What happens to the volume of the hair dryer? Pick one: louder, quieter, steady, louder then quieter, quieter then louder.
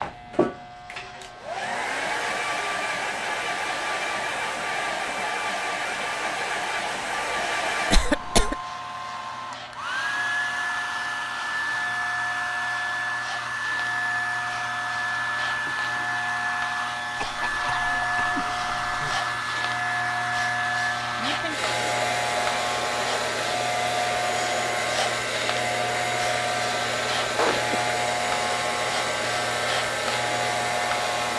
steady.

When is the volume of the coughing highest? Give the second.
8 s.